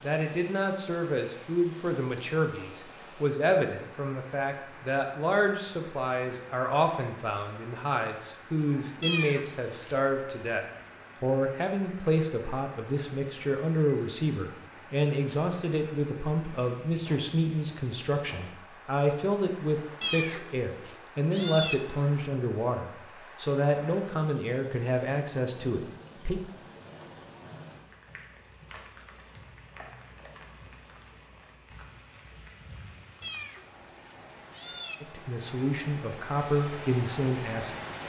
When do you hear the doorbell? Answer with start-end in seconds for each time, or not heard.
not heard.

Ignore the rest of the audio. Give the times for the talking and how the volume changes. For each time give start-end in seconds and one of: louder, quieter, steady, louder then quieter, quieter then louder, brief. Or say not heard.
0.0-26.4 steady
35.0-37.8 brief.